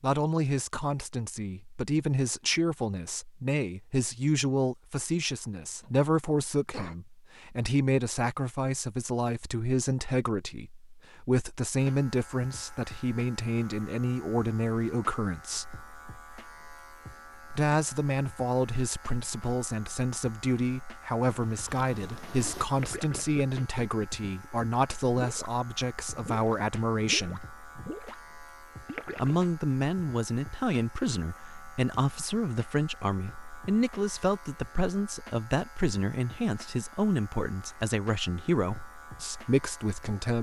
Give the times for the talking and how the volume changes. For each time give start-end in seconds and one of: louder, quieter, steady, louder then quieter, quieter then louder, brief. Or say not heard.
0.0-15.8 steady
17.5-27.4 steady
29.1-40.3 steady.